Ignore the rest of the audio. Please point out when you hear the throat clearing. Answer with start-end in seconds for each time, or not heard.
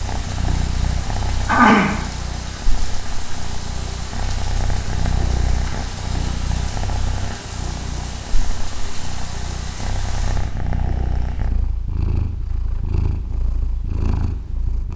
1.4-1.9.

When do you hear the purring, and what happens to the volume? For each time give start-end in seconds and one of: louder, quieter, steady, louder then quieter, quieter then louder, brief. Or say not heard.
0.0-14.9 steady.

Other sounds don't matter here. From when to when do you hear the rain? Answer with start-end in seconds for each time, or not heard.
0.0-10.6.